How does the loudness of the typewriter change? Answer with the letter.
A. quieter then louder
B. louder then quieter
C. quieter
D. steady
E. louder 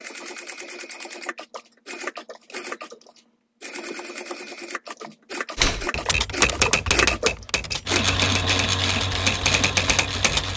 A.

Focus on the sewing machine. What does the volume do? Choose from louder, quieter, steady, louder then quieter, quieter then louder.
louder.